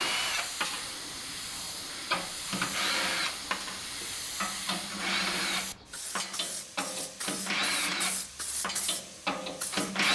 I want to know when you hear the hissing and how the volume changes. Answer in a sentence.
You can hear the hissing from 0.0 to 10.0 s, at a steady volume.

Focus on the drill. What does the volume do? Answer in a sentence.
The volume of the drill stays about the same.